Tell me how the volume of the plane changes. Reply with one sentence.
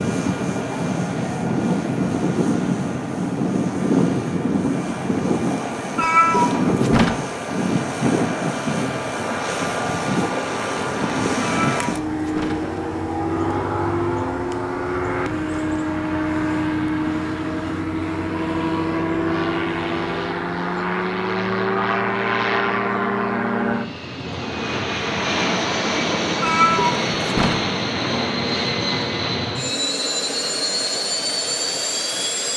The volume of the plane stays about the same.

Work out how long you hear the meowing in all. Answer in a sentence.
You can hear the meowing for 4 seconds altogether.